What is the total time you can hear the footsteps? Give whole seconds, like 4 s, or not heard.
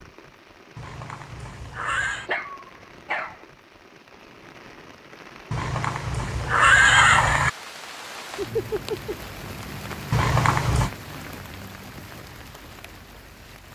not heard.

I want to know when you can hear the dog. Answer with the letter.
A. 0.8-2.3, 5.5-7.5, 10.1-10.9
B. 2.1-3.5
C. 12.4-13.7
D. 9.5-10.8
B.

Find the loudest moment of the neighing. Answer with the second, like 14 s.
7 s.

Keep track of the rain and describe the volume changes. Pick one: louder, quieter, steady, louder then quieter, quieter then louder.
louder then quieter.